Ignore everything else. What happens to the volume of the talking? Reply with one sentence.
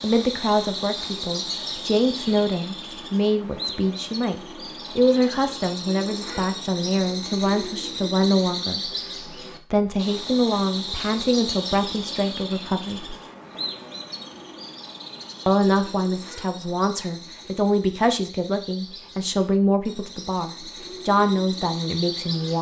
The volume of the talking stays about the same.